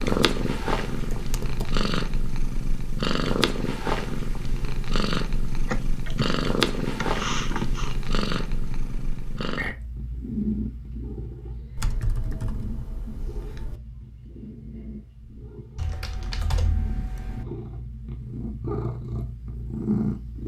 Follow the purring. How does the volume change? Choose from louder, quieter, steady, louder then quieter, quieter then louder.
quieter then louder.